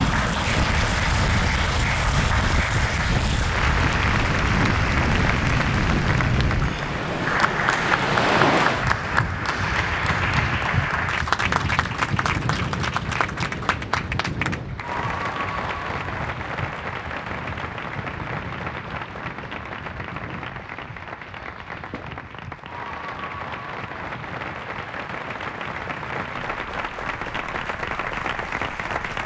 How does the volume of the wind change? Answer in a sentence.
The volume of the wind goes down.